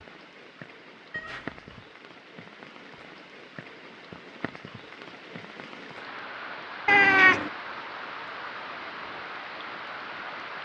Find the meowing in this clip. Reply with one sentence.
The meowing can be heard from 1.1 to 1.9 s and from 6.8 to 7.5 s.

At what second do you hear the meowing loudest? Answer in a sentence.
The loudest moment of the meowing is at 7 seconds.